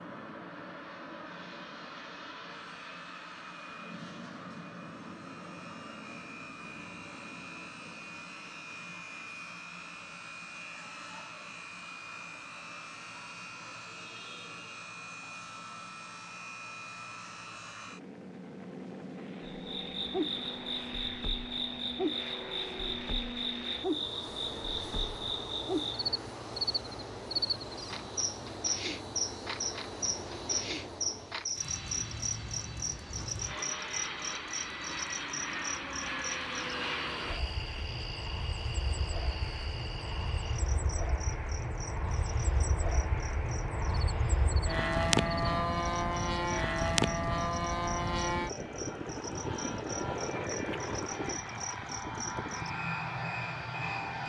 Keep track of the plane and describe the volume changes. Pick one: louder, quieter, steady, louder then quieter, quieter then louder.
louder.